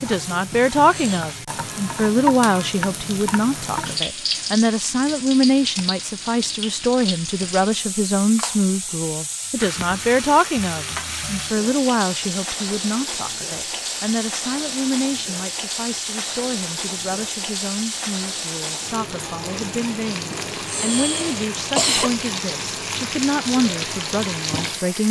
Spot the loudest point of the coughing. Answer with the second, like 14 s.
22 s.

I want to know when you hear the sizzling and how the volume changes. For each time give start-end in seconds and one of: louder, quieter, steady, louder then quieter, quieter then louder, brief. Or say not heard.
0.0-25.0 steady.